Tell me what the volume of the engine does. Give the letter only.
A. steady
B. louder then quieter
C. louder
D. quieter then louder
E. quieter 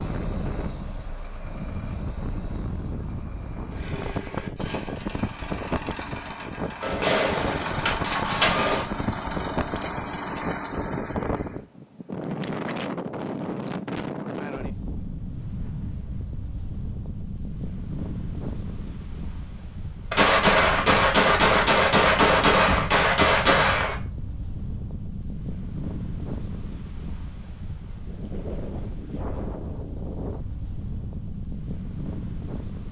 C.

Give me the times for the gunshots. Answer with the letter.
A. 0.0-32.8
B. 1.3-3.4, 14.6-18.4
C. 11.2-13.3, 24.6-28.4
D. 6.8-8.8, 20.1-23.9
D.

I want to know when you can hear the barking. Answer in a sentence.
The barking can't be heard in this clip.